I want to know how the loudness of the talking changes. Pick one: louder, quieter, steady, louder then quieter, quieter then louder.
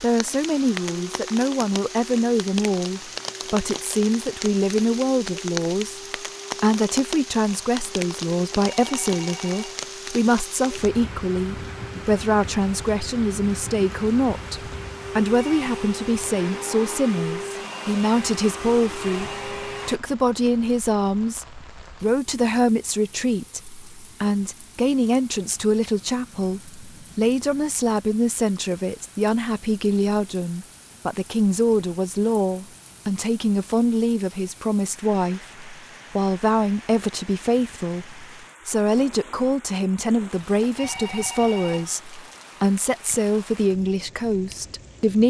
steady.